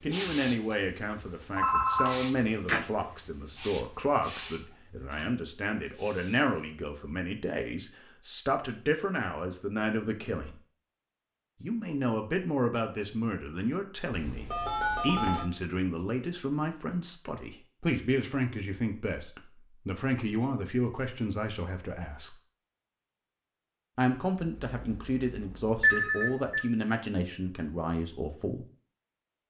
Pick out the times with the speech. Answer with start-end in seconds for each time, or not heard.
0.0-10.6, 11.6-22.4, 23.9-28.6.